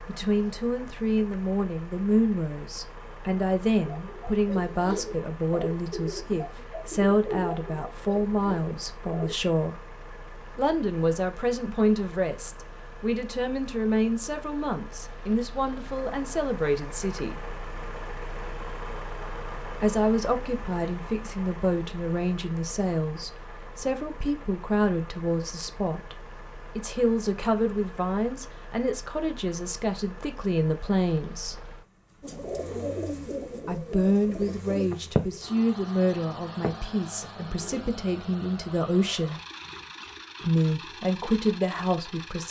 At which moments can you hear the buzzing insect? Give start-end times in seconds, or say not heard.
not heard.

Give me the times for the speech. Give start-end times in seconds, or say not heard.
0.1-9.8, 10.6-17.4, 19.8-26.1, 26.8-31.6, 33.6-39.4, 40.4-42.4.